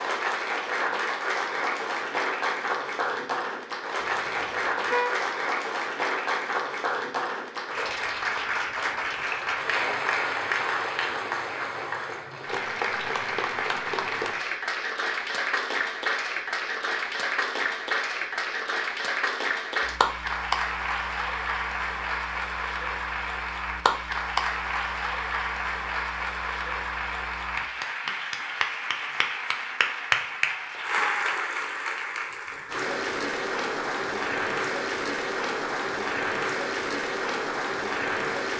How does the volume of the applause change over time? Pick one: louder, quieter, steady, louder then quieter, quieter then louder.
steady.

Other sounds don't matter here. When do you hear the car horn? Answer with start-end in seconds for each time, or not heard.
4.0-5.2.